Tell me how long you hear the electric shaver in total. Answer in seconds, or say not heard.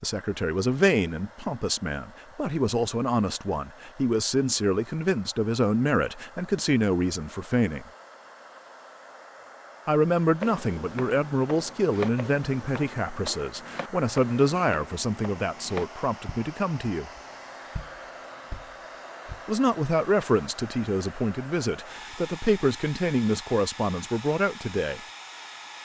not heard.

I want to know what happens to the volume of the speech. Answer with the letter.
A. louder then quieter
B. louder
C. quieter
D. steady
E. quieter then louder
D.